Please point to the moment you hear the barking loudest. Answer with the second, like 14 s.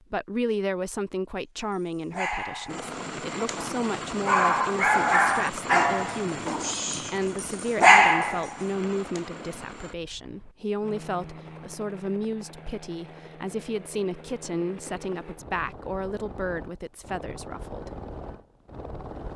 8 s.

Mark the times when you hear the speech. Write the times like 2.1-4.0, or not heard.
0.1-17.9.